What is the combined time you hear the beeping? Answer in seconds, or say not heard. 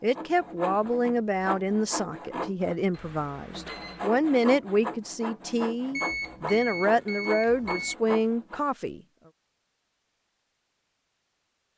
3 s.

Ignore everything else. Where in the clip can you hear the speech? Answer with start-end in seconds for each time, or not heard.
0.0-9.0.